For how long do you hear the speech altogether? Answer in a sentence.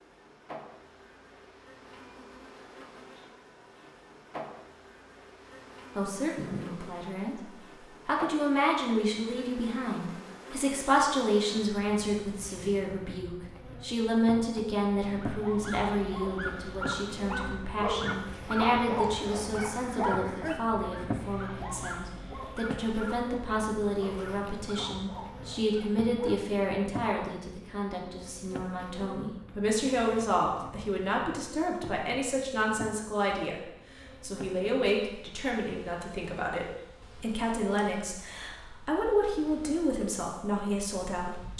You can hear the speech for 35 seconds altogether.